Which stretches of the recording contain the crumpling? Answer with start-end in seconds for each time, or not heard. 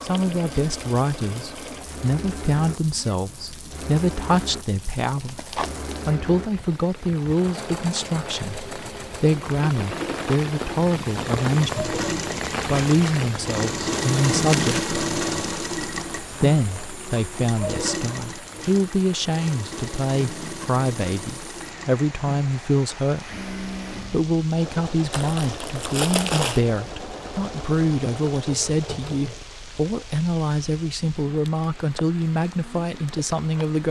5.0-6.1, 14.4-14.8, 25.1-26.6.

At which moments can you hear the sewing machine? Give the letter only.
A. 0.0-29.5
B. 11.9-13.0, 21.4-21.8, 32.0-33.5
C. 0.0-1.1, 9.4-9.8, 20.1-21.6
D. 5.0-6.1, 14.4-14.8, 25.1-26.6
A.